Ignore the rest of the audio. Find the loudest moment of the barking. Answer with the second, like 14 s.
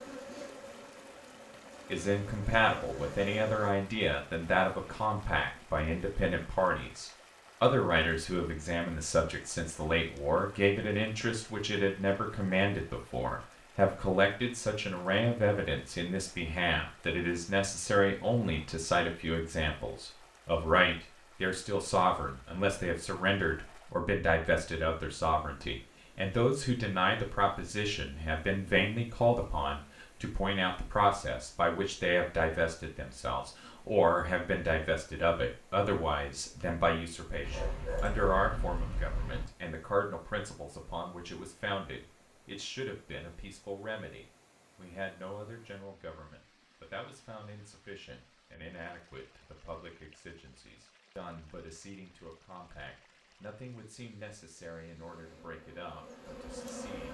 38 s.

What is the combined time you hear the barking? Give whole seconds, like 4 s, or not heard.
2 s.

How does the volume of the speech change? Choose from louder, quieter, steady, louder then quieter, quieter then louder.
quieter.